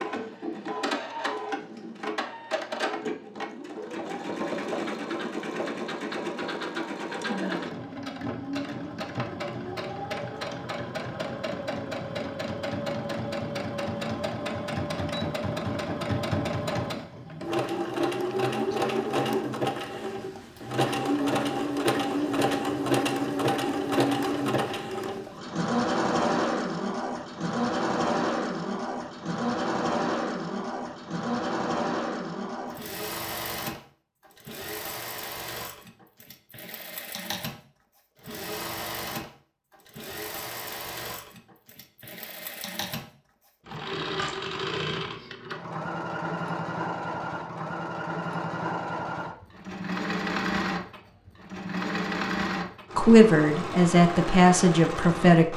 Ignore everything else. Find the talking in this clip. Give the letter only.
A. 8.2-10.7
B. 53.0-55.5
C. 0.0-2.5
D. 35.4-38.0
B.